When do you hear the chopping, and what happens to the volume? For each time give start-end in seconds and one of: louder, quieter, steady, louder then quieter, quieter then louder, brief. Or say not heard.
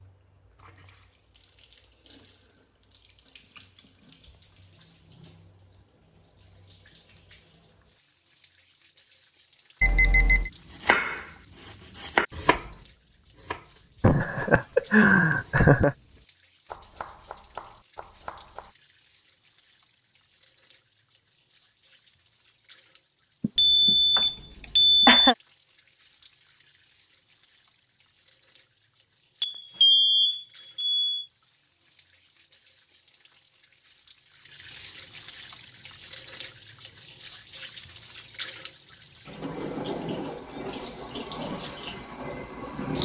10.4-18.7 quieter.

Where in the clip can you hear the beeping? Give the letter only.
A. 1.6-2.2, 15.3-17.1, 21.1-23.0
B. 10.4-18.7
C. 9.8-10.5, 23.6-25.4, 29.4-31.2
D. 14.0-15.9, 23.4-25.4
C.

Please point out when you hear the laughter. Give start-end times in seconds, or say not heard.
14.0-15.9, 23.4-25.4.